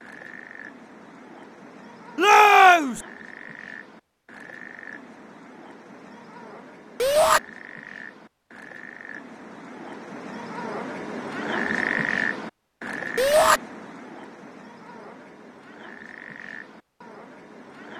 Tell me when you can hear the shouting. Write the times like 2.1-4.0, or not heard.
2.1-3.0, 7.0-7.4, 13.2-13.6.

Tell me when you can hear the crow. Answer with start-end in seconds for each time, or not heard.
not heard.